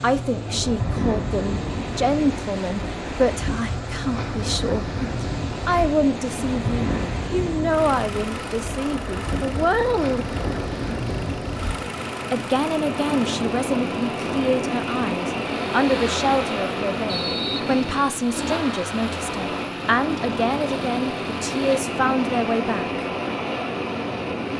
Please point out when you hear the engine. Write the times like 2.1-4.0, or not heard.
0.0-21.9.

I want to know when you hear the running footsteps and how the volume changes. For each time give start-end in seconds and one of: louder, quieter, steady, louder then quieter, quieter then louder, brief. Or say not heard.
not heard.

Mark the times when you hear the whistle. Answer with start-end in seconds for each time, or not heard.
17.1-18.2.